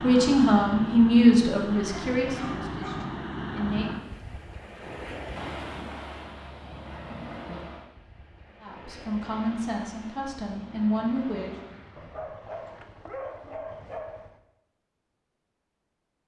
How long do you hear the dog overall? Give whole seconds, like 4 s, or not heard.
4 s.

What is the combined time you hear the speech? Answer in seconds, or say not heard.
7 s.